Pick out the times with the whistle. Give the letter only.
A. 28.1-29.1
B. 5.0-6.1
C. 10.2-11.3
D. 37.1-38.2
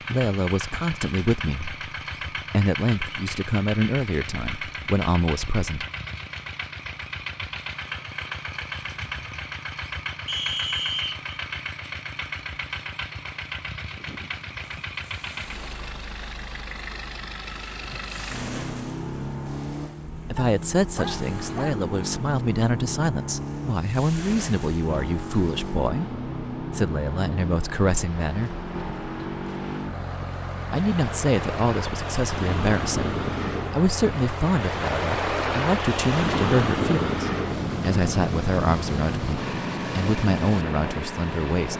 C.